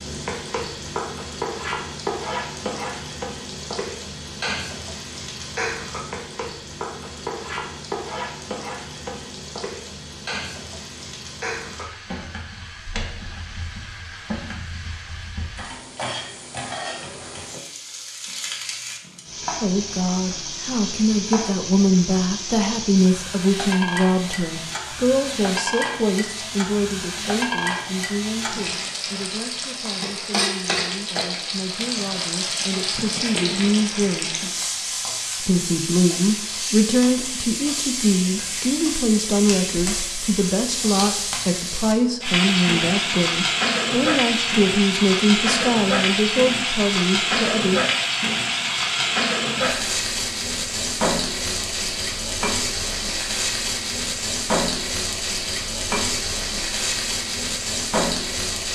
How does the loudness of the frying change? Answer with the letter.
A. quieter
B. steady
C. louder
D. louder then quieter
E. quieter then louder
C.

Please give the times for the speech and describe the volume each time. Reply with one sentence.
You can hear the speech from 19.6 to 34.5 s, getting quieter then louder; and from 35.4 to 47.8 s, at a steady volume.